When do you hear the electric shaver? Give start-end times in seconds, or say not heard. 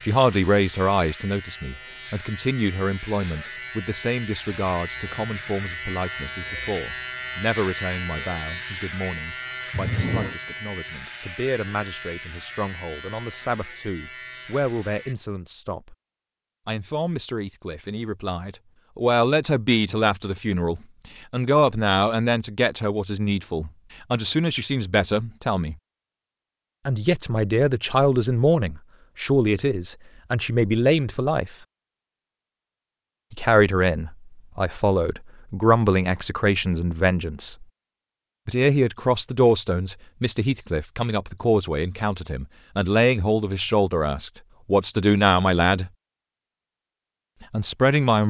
0.0-15.2.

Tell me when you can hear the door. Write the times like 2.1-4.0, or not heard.
9.7-10.3.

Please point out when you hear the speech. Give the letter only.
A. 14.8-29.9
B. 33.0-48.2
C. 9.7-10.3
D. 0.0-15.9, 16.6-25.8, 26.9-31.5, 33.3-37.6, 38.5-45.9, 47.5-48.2
D.